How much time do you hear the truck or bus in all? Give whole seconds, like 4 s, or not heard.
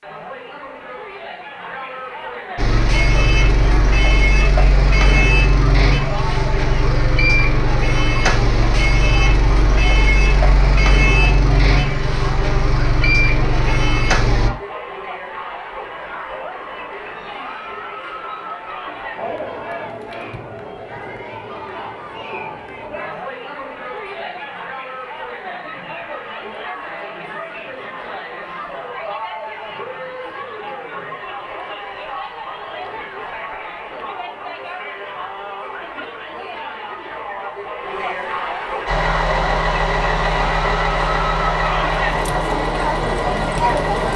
17 s.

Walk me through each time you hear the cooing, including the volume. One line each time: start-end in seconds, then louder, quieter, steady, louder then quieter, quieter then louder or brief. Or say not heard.
not heard.